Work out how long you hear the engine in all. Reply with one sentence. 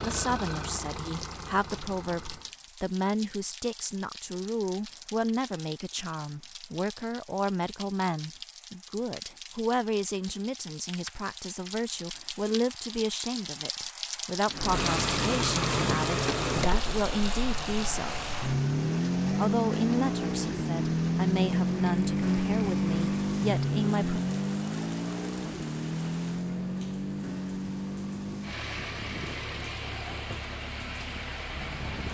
The engine can be heard for 20 seconds in total.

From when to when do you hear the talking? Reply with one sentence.
You can hear the talking from 0.0 to 18.3 s and from 19.3 to 24.2 s.